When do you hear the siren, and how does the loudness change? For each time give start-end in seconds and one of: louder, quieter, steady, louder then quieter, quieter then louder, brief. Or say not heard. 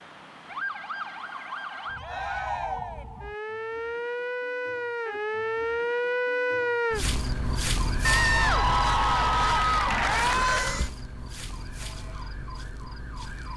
0.0-13.5 louder then quieter.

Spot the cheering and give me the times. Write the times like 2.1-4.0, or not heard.
1.9-3.0, 8.0-10.8.